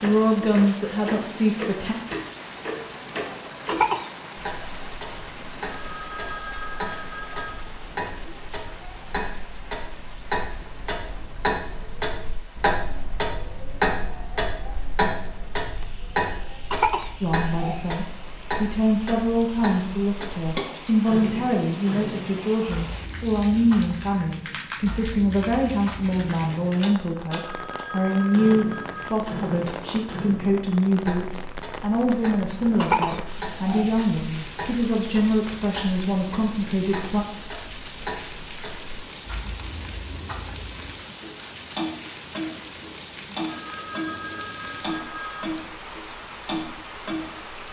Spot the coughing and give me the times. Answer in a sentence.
The coughing can be heard from 3.6 to 4.1 s, from 16.7 to 17.9 s and from 32.8 to 34.0 s.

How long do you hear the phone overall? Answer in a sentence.
You can hear the phone for 6 seconds altogether.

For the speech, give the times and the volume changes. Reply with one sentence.
You can hear the speech briefly from 0.0 to 1.9 s; and from 17.2 to 37.2 s, at a steady volume.